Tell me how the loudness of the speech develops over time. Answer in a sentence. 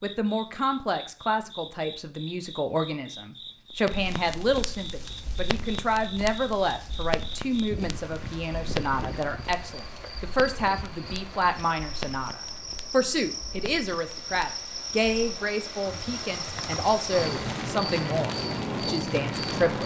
The loudness of the speech stays about the same.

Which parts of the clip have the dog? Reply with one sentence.
You can't hear the dog here.